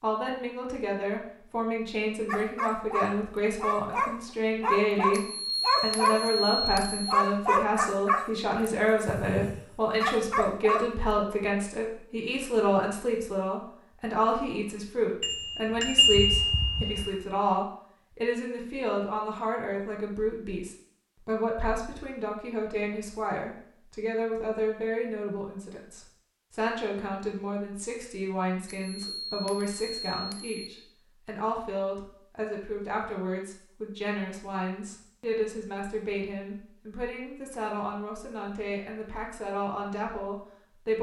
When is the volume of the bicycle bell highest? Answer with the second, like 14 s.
16 s.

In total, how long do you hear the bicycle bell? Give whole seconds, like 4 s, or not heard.
6 s.